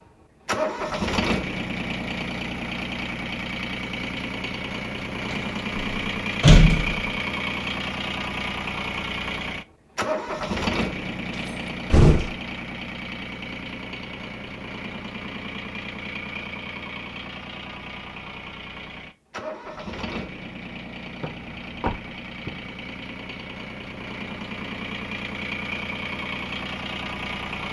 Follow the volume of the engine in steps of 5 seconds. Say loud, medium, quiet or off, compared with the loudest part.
loud, loud, loud, medium, medium, loud.